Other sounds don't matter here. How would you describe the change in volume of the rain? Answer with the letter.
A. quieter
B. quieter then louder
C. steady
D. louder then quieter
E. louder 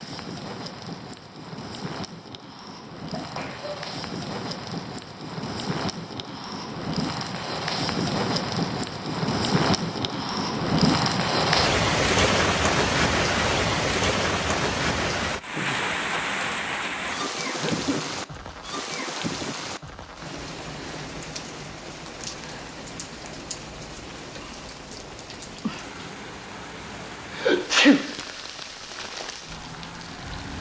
D.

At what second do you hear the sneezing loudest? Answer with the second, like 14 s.
28 s.